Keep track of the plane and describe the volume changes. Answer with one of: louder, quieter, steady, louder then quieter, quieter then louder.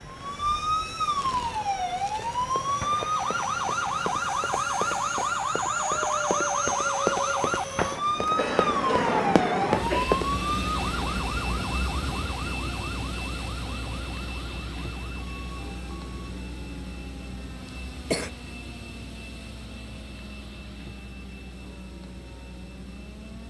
louder then quieter.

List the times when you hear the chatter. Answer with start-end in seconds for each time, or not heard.
not heard.